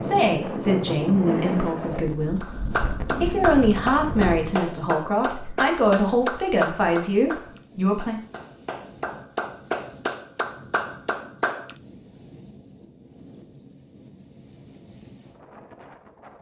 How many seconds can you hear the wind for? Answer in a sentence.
You can hear the wind for 16 seconds altogether.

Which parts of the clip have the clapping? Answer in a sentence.
The clapping can be heard from 2.4 to 11.8 s.